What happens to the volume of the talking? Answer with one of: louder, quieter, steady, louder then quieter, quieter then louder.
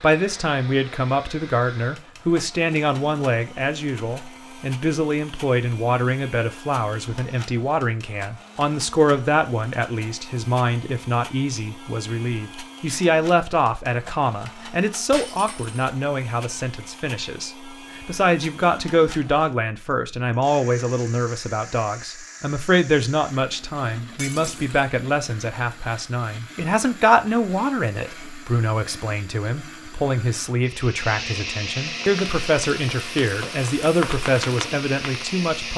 steady.